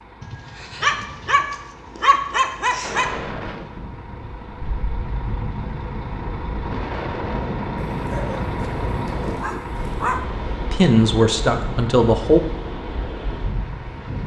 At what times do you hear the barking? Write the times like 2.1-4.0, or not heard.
0.2-3.1, 8.0-10.2.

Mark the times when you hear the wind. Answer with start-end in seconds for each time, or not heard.
2.8-14.2.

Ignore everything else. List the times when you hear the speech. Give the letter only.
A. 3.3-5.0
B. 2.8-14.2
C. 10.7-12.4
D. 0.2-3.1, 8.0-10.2
C.